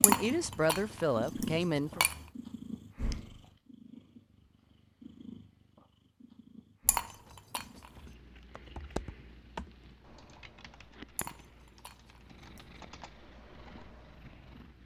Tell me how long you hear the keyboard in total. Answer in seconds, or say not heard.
7 s.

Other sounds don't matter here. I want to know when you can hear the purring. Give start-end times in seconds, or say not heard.
0.0-14.8.